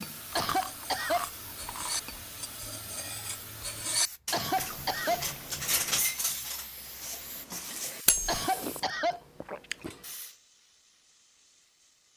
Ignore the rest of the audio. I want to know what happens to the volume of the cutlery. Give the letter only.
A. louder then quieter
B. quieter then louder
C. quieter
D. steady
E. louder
A.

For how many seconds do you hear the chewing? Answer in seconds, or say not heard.
5 s.